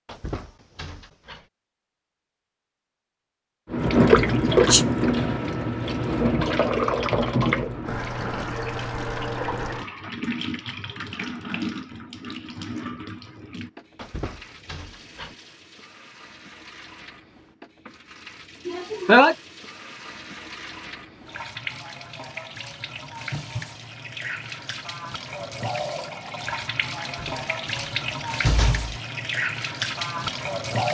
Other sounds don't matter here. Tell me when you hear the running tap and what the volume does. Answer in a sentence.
You can hear the running tap from 3.7 to 30.8 s, getting quieter then louder.